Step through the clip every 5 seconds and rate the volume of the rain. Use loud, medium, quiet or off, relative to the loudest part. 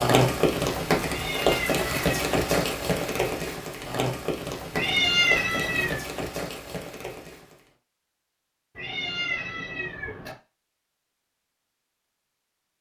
loud, medium, off.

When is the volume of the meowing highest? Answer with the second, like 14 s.
5 s.